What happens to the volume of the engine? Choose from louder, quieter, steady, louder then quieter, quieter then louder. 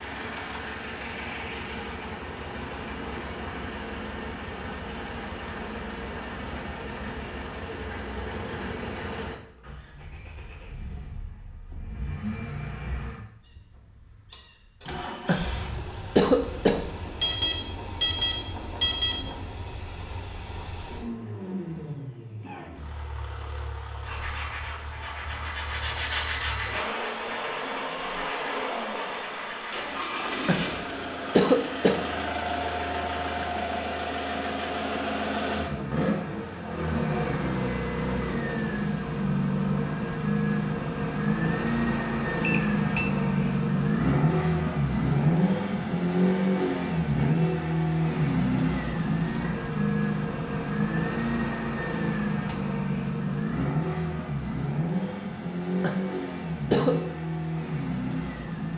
louder.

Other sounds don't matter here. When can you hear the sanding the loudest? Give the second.
26 s.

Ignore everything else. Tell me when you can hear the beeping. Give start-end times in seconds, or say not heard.
17.2-19.2, 42.4-43.2.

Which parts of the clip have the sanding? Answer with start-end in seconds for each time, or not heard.
23.6-29.9.